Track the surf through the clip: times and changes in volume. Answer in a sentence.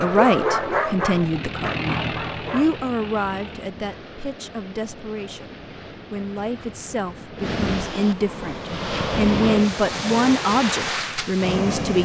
The surf can be heard from 0.0 to 12.0 s, getting louder.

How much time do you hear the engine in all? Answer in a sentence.
The engine can be heard for 4 seconds in total.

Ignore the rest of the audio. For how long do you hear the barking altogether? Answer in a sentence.
The barking can be heard for 3 seconds in total.